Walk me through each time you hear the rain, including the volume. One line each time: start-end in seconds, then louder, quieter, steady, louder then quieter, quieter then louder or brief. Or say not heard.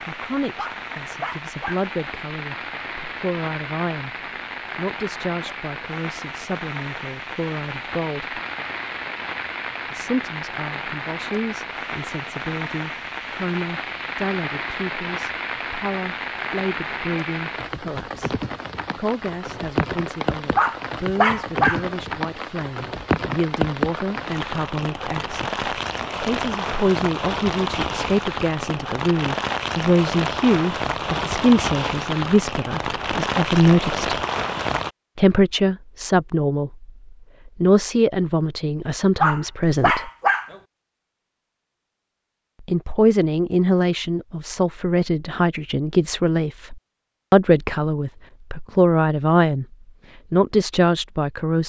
0.0-34.9 louder.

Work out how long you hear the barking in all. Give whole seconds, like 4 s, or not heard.
4 s.